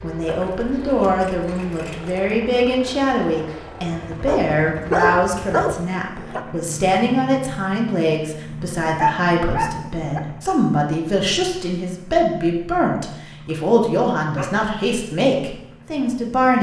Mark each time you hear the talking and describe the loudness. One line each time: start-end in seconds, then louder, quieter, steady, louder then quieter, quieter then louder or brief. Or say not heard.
0.0-16.5 steady.